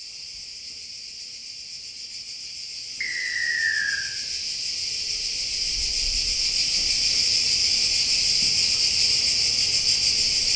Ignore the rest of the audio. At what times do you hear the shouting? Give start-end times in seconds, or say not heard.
not heard.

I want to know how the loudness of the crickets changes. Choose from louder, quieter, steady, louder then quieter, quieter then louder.
louder.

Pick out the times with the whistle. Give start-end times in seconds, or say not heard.
3.0-4.0.